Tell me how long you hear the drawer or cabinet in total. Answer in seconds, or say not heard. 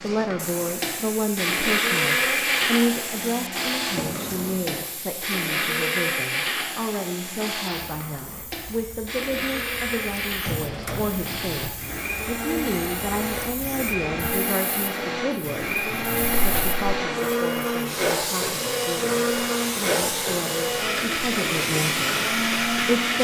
3 s.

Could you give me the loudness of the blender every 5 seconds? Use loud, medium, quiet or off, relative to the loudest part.
loud, loud, medium, loud, loud.